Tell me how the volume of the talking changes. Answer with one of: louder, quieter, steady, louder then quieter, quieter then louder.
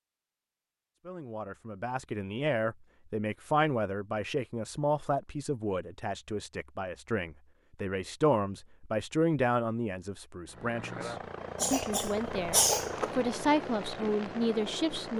steady.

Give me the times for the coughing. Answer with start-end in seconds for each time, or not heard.
11.6-13.1.